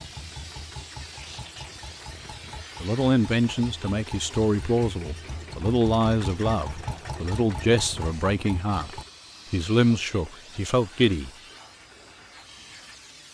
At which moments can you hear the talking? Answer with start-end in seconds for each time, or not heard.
2.8-11.3.